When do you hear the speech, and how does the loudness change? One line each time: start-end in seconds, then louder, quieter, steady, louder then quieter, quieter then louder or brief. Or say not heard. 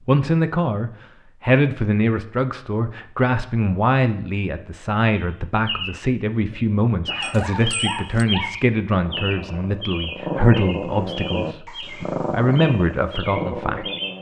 0.1-13.8 steady.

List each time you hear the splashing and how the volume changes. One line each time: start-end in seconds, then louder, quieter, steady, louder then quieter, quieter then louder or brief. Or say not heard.
not heard.